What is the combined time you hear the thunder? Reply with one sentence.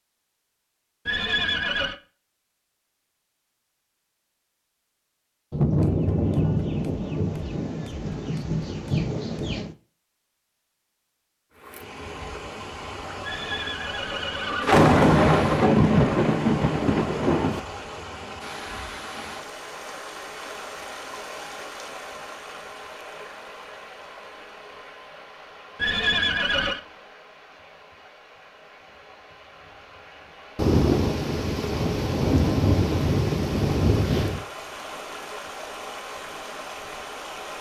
The thunder can be heard for 11 seconds in total.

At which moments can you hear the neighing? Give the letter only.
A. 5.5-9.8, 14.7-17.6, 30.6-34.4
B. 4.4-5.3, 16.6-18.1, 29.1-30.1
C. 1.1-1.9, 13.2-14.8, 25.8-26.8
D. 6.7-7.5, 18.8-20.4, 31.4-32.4
C.